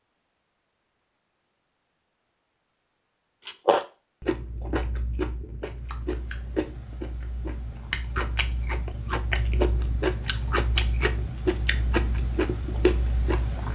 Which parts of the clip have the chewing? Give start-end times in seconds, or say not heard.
3.5-13.7.